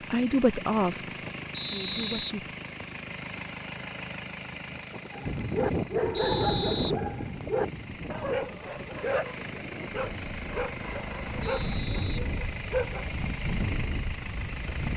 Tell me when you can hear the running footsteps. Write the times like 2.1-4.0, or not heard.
not heard.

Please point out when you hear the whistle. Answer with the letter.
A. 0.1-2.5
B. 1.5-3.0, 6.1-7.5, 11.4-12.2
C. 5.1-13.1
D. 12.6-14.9
B.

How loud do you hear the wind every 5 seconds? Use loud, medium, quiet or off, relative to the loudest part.
off, loud, loud.